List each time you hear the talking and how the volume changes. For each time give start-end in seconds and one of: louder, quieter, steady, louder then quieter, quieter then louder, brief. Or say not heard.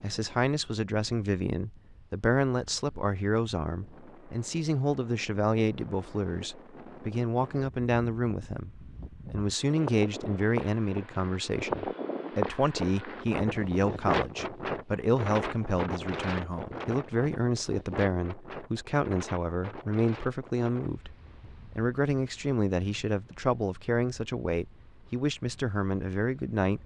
0.0-26.8 steady.